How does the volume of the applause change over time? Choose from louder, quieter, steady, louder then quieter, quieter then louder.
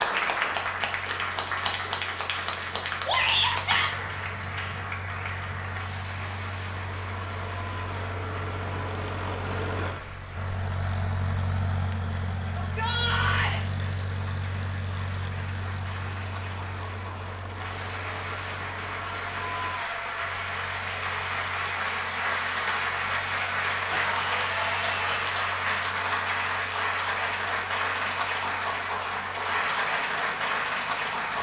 quieter then louder.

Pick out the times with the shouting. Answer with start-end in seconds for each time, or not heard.
3.0-3.9, 12.5-13.6, 23.9-25.3.